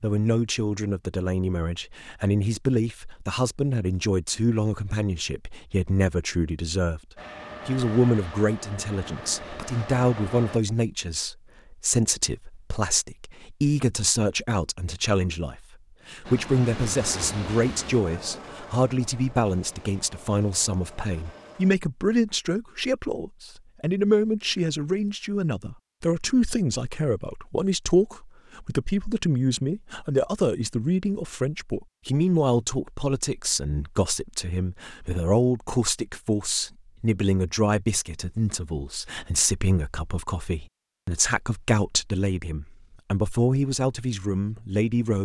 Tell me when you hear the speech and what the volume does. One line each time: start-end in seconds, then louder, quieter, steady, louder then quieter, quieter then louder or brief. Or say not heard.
0.0-7.0 steady
7.7-45.2 steady.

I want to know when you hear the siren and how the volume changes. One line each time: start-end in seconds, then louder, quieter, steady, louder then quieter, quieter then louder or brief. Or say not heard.
not heard.